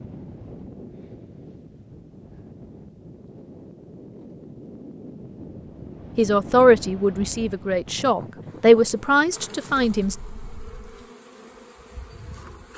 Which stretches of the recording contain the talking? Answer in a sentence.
You can hear the talking from 6.2 to 10.2 s.